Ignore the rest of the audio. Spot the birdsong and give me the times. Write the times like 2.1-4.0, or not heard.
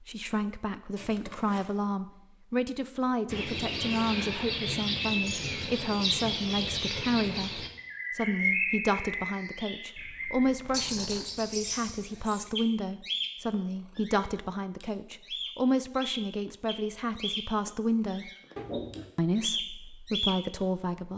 3.3-21.1.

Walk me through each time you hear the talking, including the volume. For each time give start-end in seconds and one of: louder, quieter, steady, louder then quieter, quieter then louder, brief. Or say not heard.
0.0-18.3 steady
19.1-21.1 brief.